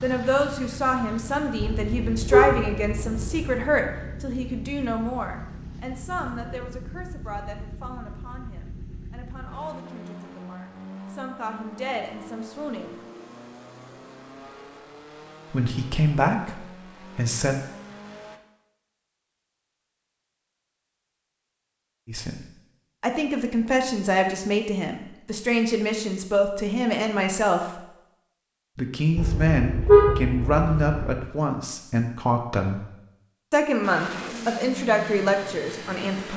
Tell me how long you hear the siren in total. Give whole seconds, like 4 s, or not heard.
not heard.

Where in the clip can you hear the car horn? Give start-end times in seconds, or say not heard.
1.6-3.5, 29.1-31.1.